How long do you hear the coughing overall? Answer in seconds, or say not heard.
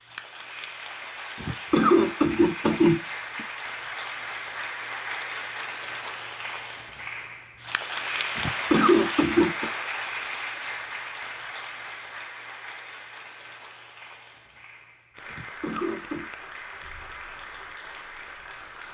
4 s.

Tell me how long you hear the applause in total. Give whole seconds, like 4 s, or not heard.
19 s.